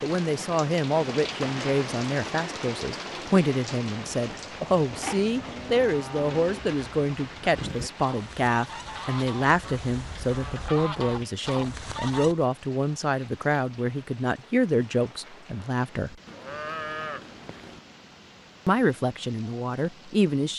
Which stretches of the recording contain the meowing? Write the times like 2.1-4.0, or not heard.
not heard.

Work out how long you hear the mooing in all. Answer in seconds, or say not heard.
3 s.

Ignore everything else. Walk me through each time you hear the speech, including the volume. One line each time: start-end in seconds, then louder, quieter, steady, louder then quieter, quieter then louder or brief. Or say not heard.
0.0-16.1 steady
18.6-20.5 brief.